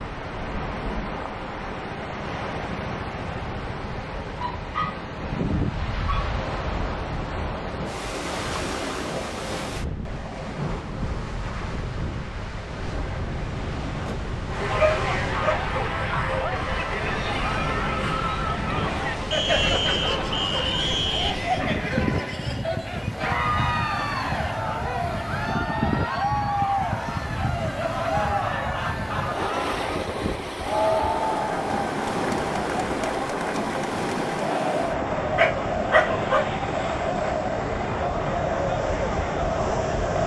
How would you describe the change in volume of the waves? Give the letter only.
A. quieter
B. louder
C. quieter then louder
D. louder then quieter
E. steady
E.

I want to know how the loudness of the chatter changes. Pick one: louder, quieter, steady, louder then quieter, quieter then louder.
steady.